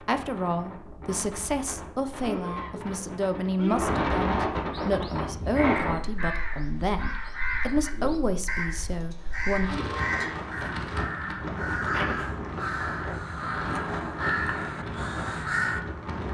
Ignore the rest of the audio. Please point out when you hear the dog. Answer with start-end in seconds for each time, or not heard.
not heard.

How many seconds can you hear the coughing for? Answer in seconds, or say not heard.
2 s.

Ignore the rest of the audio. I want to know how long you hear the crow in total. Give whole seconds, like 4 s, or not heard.
11 s.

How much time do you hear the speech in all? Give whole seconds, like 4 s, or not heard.
10 s.